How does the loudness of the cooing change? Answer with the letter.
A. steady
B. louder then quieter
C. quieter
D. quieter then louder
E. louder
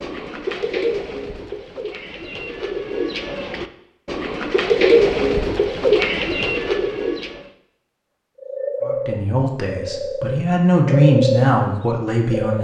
B.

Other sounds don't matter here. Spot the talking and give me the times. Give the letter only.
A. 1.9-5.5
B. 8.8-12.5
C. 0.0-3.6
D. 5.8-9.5
B.